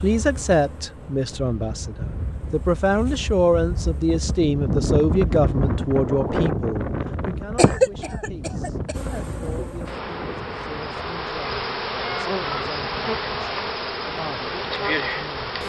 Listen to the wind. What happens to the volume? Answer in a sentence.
The volume of the wind goes up, then down.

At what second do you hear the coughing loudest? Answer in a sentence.
The loudest moment of the coughing is at 8 seconds.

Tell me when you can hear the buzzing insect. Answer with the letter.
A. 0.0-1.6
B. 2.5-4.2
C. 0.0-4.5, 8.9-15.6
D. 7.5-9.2
C.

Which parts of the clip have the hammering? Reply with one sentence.
You can't hear the hammering here.